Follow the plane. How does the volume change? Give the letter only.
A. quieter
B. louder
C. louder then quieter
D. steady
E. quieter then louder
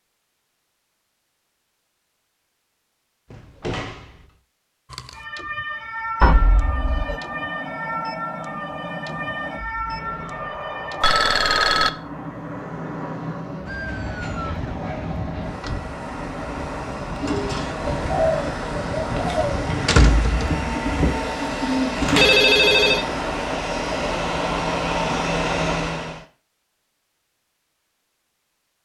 B.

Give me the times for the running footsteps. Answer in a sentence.
You can't hear the running footsteps here.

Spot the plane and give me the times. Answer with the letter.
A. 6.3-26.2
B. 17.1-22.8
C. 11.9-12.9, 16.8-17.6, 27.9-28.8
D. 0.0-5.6
A.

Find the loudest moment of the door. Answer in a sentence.
The loudest moment of the door is at 20 seconds.